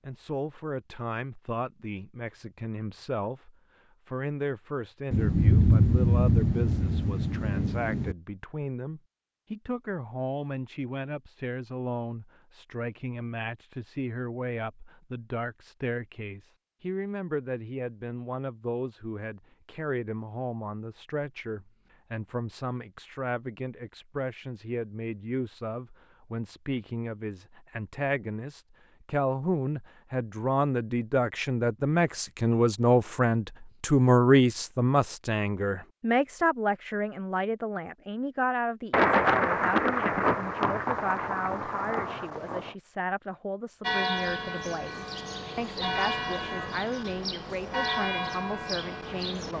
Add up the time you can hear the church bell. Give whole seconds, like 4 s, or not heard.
6 s.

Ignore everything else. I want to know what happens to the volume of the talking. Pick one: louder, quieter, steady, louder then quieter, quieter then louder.
louder then quieter.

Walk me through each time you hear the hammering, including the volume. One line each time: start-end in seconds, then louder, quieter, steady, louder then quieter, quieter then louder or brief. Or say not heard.
not heard.